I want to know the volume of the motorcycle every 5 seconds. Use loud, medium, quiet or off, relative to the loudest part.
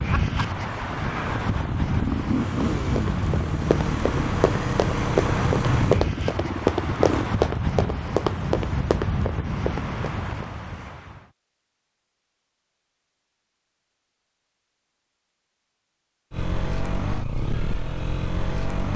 loud, loud, off, loud.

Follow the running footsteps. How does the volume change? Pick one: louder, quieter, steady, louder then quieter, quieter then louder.
louder then quieter.